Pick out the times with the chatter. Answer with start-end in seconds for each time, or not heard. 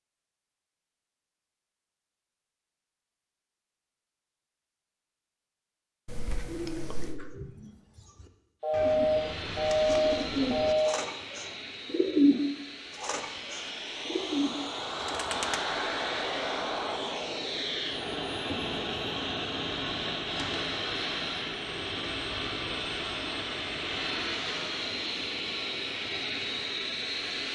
not heard.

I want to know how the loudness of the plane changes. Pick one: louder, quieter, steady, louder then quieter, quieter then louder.
louder.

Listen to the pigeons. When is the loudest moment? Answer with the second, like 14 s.
12 s.